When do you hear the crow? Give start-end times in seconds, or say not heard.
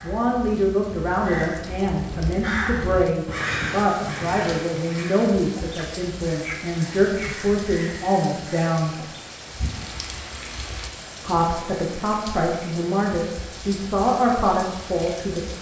0.0-9.2.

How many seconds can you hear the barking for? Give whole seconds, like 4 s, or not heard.
not heard.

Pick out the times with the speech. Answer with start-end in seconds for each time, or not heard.
0.0-8.9, 11.2-15.5.